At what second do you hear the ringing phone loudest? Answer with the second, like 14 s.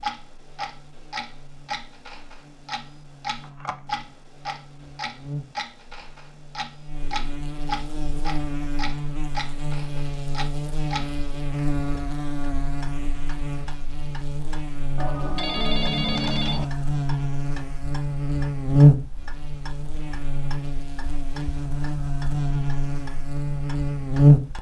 16 s.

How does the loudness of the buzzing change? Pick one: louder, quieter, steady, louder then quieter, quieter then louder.
louder then quieter.